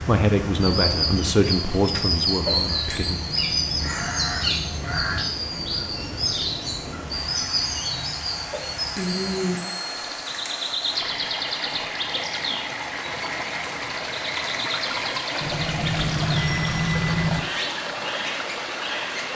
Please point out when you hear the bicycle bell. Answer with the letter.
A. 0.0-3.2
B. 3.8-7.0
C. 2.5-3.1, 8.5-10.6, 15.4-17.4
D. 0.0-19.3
C.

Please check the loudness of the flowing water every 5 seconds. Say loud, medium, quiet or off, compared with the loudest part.
medium, medium, loud, loud.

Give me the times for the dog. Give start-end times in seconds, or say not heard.
not heard.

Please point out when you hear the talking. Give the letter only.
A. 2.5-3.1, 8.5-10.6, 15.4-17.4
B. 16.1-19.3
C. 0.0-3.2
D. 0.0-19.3
C.